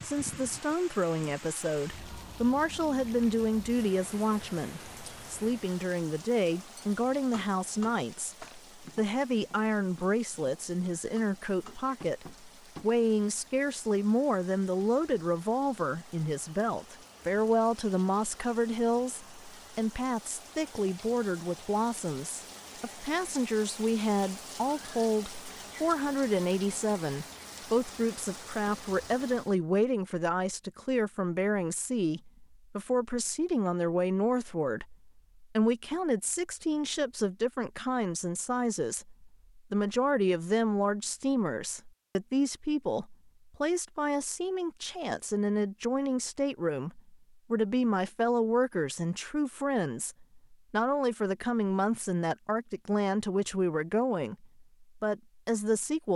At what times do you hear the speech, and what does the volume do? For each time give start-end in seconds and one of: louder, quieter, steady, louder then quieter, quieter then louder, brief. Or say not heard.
0.0-56.1 steady.